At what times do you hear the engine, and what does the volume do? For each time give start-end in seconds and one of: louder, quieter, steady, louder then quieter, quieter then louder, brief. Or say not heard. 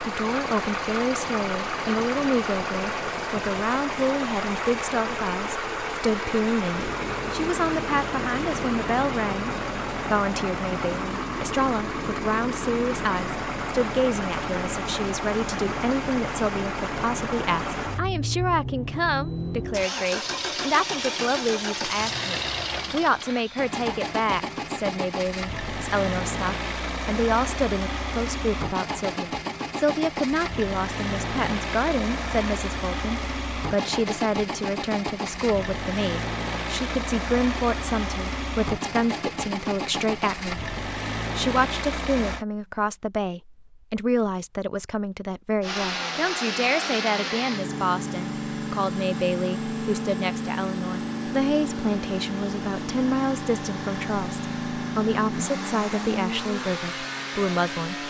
0.0-42.5 steady
45.6-58.0 steady.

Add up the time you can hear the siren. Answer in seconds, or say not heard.
not heard.